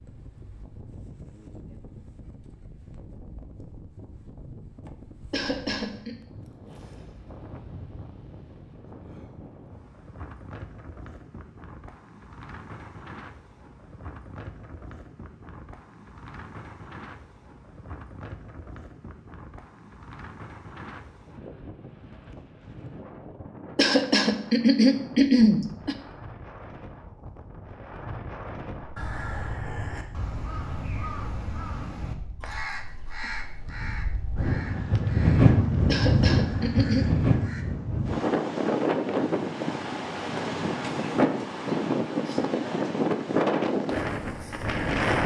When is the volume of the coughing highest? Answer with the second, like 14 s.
25 s.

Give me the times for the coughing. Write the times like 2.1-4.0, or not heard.
5.3-6.2, 23.8-25.9, 35.9-37.0.